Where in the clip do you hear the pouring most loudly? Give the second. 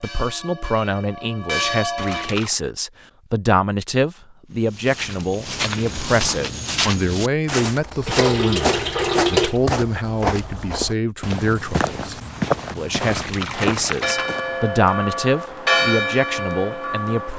9 s.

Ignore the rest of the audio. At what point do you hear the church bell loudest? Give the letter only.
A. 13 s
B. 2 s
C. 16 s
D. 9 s
C.